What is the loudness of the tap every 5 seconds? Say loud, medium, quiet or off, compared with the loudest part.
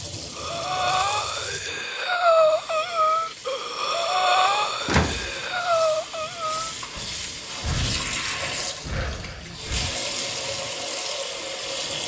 medium, loud, loud.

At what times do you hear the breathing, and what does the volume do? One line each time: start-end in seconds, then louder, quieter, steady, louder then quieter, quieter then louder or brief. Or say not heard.
0.3-10.0 quieter.